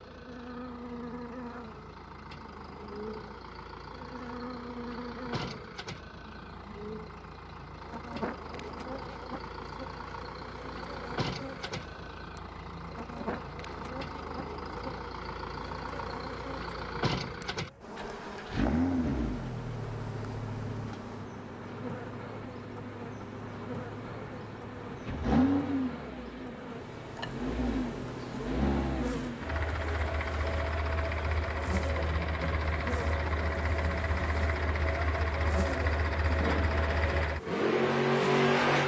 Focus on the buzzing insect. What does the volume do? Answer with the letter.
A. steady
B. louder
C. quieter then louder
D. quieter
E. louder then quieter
A.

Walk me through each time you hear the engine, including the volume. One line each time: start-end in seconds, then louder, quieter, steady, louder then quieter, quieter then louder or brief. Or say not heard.
0.0-38.8 louder.